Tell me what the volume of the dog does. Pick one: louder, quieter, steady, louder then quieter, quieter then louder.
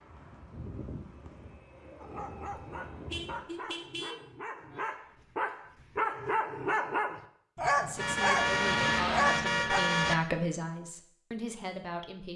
louder.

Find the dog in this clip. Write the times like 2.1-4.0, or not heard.
2.0-9.8.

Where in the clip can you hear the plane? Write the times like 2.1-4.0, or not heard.
0.0-3.5.